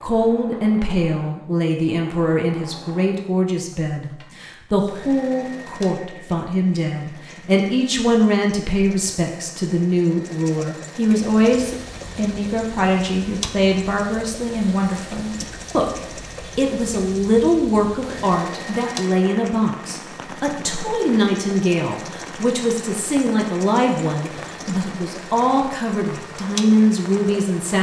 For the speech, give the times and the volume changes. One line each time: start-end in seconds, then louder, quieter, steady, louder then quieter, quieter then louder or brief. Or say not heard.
0.0-27.7 steady.